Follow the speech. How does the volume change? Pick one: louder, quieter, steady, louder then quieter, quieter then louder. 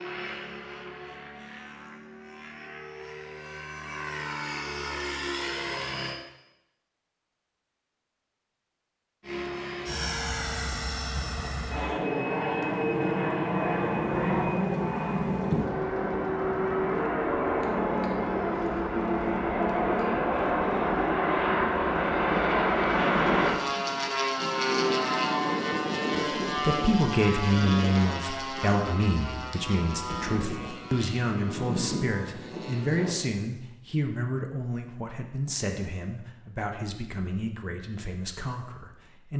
quieter.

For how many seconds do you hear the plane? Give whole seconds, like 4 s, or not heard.
30 s.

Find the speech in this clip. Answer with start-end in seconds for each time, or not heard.
26.6-39.3.